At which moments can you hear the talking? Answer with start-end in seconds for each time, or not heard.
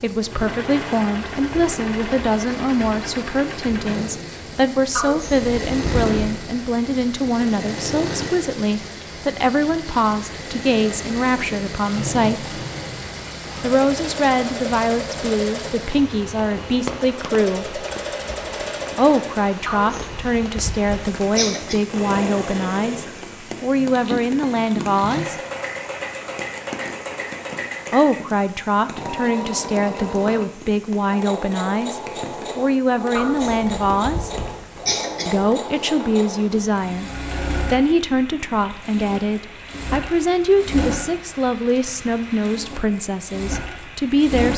0.0-12.6, 13.6-17.8, 18.9-25.4, 27.9-34.3, 35.2-37.1, 37.7-44.5.